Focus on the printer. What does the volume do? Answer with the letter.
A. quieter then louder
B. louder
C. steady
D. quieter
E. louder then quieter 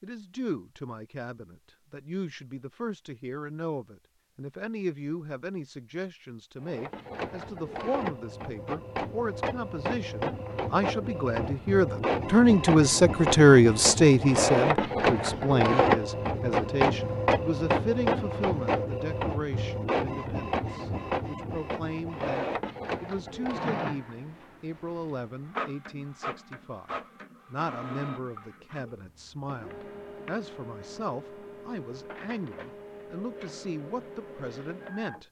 E.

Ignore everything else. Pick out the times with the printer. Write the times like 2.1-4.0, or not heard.
6.6-35.2.